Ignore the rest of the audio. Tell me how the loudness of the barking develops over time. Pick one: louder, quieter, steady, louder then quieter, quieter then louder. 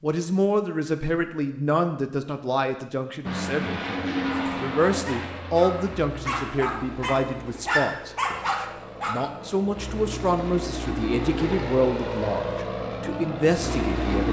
louder.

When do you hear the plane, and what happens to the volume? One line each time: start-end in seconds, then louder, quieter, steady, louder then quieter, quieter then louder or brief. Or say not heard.
3.2-14.2 quieter then louder.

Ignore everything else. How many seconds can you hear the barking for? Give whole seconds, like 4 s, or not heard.
5 s.